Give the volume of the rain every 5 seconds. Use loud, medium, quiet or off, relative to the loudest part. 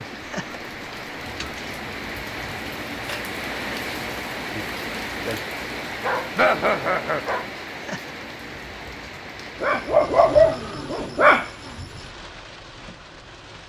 loud, loud, medium.